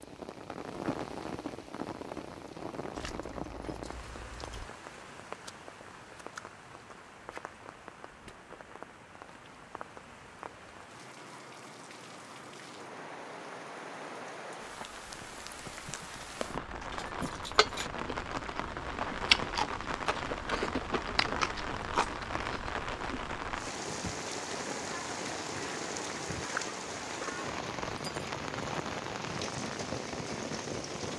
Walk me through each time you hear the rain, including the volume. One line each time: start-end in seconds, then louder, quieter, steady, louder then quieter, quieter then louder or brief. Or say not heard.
0.0-31.1 quieter then louder.